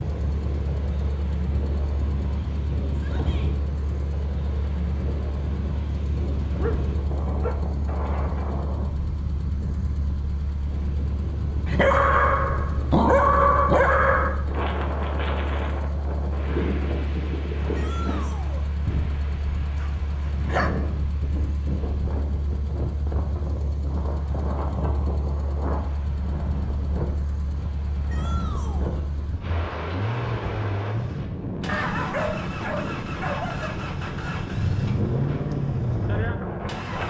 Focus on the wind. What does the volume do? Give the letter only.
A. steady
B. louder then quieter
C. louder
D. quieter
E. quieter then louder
A.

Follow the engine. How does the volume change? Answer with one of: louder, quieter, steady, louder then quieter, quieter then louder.
louder.